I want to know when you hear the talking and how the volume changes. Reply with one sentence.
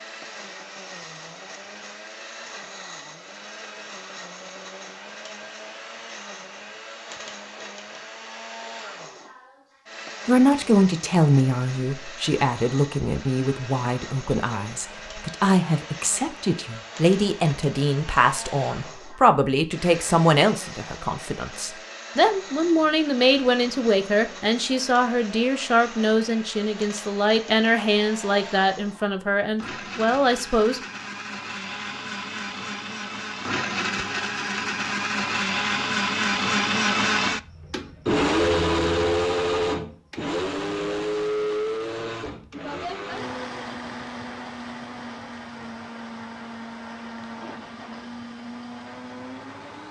You can hear the talking from 10.2 to 30.8 s, at a steady volume.